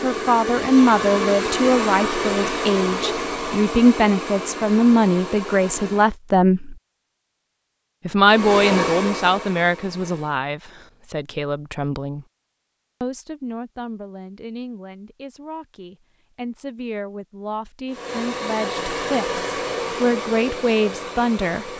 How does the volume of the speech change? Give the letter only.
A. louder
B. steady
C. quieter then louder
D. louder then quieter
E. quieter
C.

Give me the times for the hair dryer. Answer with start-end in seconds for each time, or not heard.
0.0-6.2, 8.2-10.4, 17.9-21.7.